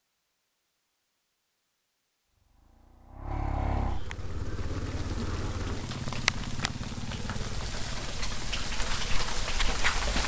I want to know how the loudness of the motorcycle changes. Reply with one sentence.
The volume of the motorcycle goes down.